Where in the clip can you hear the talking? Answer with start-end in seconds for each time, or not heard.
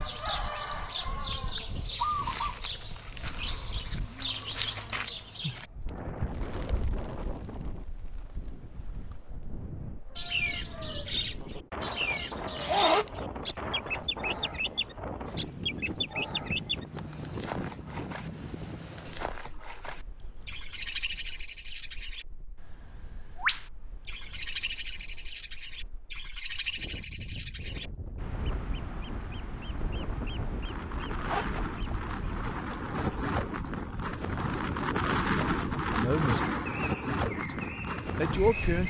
35.9-38.8.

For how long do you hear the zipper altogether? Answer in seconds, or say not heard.
3 s.